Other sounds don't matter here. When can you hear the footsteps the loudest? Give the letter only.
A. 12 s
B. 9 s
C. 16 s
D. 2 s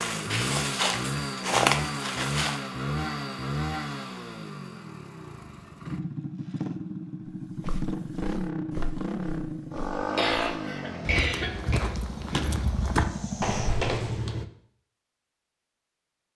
D.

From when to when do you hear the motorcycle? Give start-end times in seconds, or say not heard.
0.0-14.4.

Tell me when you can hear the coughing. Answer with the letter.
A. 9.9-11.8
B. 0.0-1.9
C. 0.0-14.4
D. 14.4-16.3
A.